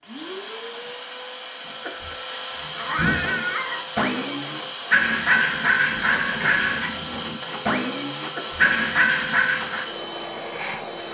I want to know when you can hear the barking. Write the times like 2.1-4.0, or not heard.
3.1-9.9.